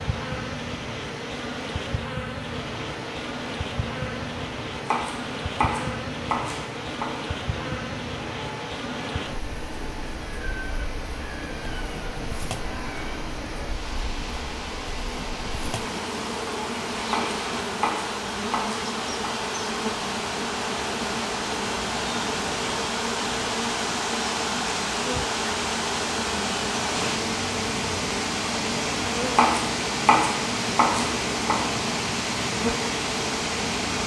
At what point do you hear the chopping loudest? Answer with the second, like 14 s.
30 s.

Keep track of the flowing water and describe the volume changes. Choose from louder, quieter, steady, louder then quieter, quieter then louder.
louder.